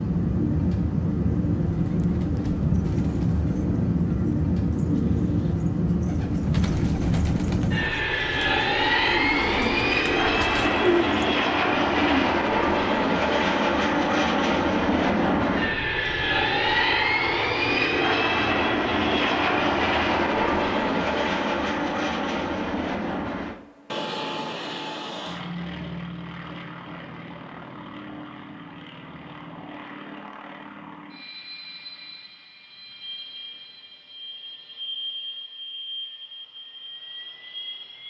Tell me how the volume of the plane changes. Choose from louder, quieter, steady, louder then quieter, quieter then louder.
quieter.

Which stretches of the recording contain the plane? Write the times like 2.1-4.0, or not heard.
0.0-38.0.